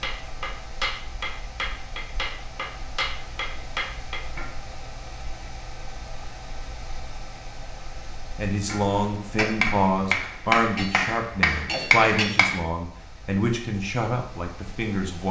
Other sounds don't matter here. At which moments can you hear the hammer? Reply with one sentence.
The hammer can be heard from 0.0 to 4.5 s and from 8.7 to 12.6 s.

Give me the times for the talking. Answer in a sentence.
You can hear the talking from 8.3 to 15.2 s.